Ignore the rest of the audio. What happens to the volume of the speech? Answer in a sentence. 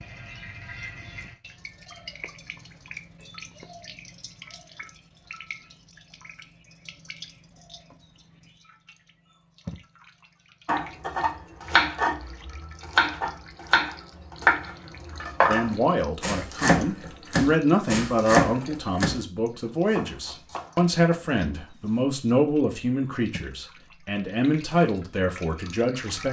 The volume of the speech stays about the same.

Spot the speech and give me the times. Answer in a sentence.
The speech can be heard from 15.4 to 26.2 s.